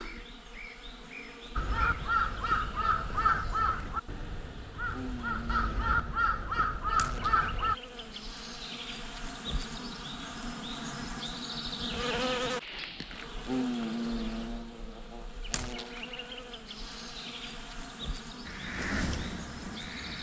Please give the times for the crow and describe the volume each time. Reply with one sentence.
The crow can be heard from 1.6 to 7.8 s, getting quieter then louder; and briefly from 18.4 to 20.1 s.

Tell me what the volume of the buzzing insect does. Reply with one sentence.
The loudness of the buzzing insect goes up, then down.